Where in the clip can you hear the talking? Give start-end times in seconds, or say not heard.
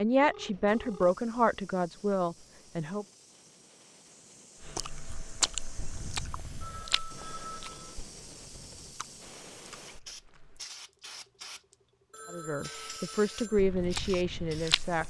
0.0-3.0, 12.3-15.0.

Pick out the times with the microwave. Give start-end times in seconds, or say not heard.
not heard.